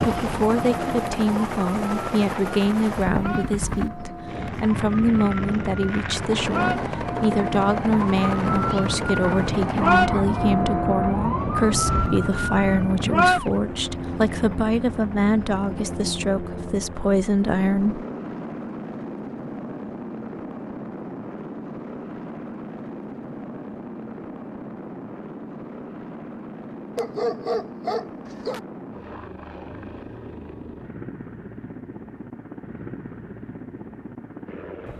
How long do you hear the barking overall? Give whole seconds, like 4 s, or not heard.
3 s.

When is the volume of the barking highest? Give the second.
27 s.